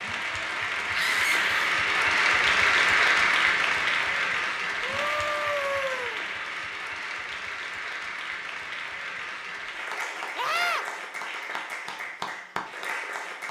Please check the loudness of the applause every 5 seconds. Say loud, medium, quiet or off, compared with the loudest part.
loud, medium, medium.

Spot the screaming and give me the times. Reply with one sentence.
You can hear the screaming from 0.9 to 1.8 s, from 4.8 to 6.2 s and from 10.3 to 10.8 s.